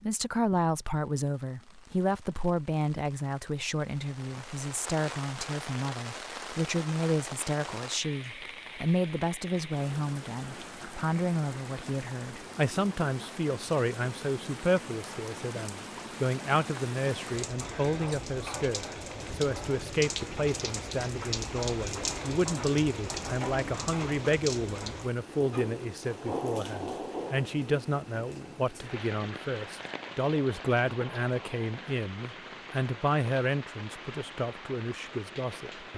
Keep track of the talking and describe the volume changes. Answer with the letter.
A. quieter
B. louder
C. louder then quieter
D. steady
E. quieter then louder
D.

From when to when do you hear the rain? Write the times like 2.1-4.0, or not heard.
0.0-35.9.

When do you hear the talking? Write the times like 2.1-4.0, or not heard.
0.0-35.9.